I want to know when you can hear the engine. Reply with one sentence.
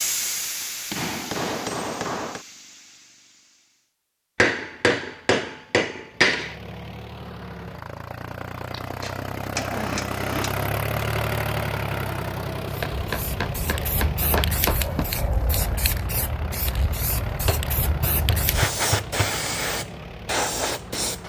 You can hear the engine from 6.0 to 21.2 s.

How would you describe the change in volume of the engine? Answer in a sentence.
The volume of the engine goes up, then down.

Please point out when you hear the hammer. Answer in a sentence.
You can hear the hammer from 0.9 to 2.5 s, from 4.3 to 6.5 s, from 8.7 to 10.7 s, from 12.8 to 15.1 s and from 17.4 to 19.4 s.